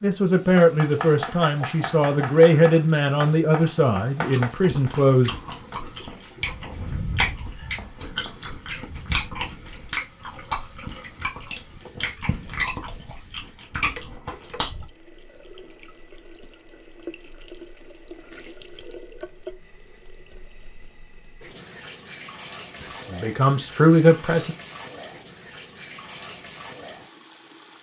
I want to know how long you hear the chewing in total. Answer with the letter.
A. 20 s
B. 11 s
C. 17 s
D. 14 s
B.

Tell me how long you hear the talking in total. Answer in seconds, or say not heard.
7 s.